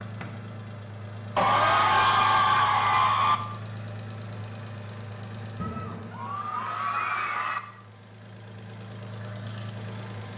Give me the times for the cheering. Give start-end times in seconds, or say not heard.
1.4-3.4, 5.6-7.6.